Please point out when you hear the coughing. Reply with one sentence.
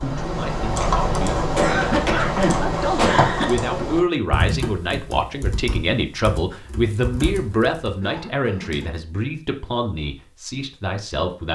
The coughing can be heard from 1.6 to 3.5 s and from 8.0 to 8.9 s.